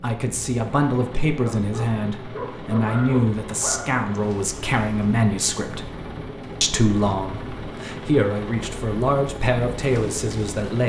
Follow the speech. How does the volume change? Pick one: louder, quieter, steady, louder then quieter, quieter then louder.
steady.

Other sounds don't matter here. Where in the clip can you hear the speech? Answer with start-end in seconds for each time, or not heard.
0.0-5.8, 6.6-10.8.